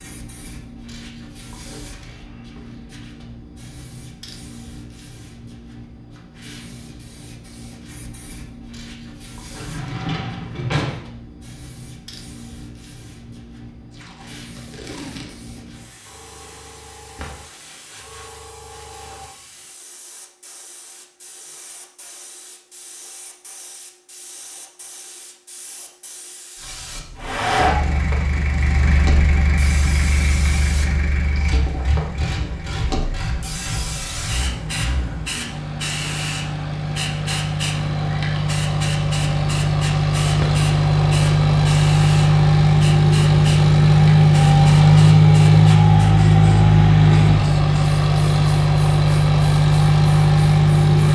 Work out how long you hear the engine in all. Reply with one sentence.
You can hear the engine for 24 seconds altogether.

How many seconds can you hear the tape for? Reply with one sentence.
You can hear the tape for 2 seconds altogether.